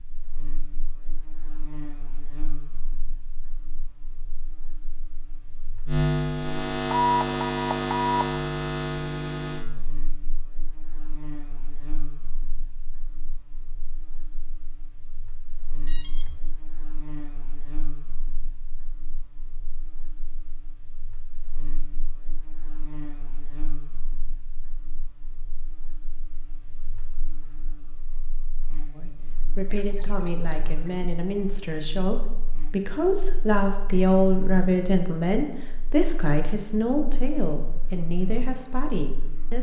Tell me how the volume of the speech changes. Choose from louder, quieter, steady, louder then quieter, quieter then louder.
louder then quieter.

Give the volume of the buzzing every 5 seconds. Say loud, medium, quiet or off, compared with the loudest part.
quiet, loud, quiet, quiet, quiet, quiet, quiet, quiet.